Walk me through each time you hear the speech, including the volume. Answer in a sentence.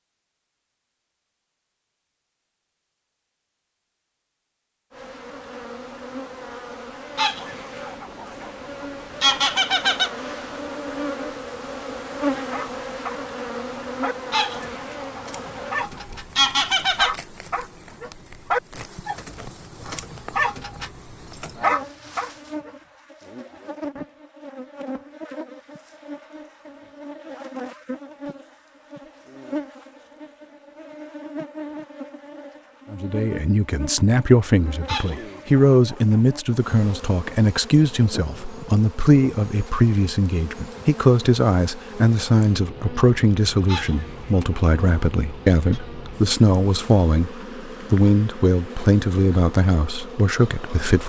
The speech can be heard from 32.9 to 51.0 s, at a steady volume.